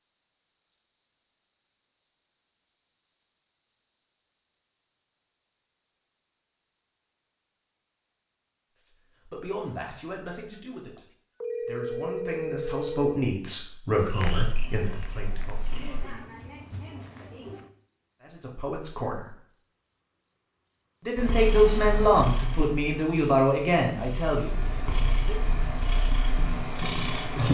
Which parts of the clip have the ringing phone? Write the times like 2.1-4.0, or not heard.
10.6-13.2.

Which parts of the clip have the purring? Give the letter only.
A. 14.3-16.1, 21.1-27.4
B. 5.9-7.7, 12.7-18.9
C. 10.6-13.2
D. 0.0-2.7
A.